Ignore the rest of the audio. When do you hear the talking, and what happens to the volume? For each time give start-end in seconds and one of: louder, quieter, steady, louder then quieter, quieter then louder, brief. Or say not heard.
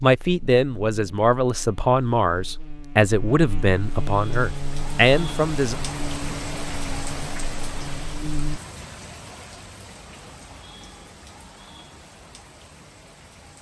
0.0-5.8 steady.